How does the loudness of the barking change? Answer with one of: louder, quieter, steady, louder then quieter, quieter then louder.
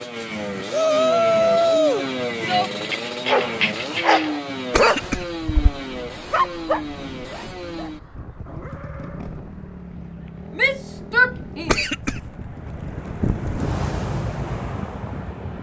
quieter.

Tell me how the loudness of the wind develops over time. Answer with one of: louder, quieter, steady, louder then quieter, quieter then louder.
louder.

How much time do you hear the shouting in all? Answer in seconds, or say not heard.
3 s.